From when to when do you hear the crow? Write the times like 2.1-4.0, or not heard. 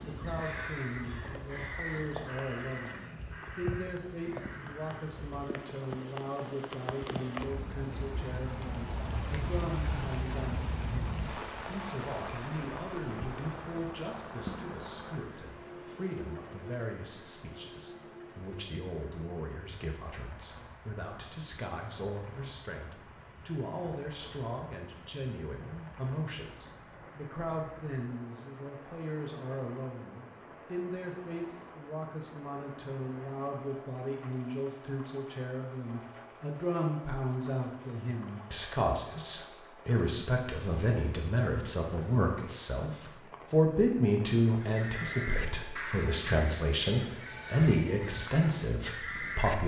0.0-5.3, 44.5-49.5.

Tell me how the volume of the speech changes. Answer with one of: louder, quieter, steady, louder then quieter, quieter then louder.
louder.